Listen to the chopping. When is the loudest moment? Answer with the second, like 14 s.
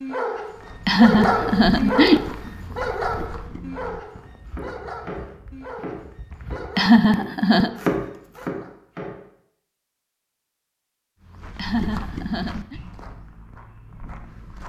8 s.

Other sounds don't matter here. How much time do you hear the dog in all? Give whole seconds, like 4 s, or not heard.
9 s.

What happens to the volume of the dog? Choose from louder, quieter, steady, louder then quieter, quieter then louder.
quieter.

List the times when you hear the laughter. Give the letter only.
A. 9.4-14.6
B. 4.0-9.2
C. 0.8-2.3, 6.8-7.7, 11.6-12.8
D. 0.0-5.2
C.